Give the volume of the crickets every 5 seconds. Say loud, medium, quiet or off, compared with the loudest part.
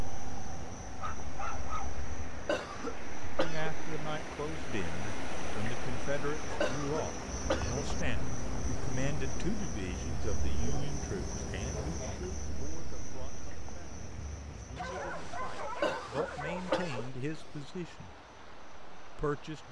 medium, loud, loud, quiet.